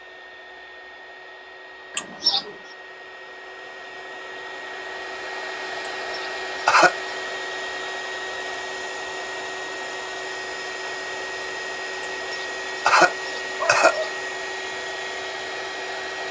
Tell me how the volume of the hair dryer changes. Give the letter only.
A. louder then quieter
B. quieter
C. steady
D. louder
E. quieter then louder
D.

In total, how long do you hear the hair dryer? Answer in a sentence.
The hair dryer can be heard for 16 seconds in total.